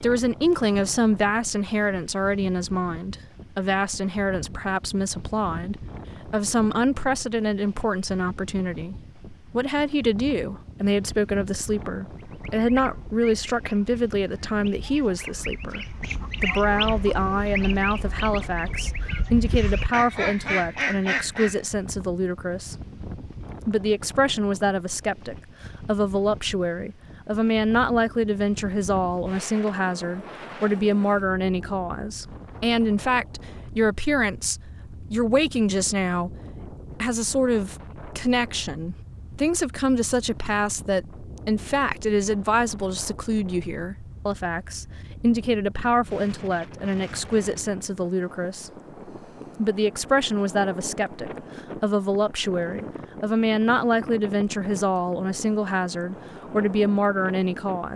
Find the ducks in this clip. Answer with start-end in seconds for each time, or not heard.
12.2-21.6.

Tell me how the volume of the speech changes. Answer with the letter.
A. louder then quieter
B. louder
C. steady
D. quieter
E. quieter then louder
C.